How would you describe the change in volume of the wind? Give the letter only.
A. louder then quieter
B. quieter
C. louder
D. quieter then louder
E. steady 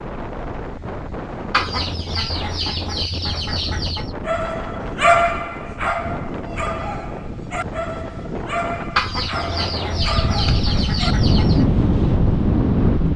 C.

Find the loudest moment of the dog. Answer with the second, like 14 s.
5 s.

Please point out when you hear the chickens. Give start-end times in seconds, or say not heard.
1.5-4.2, 8.9-11.7.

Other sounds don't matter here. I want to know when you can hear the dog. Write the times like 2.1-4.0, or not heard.
3.6-11.2.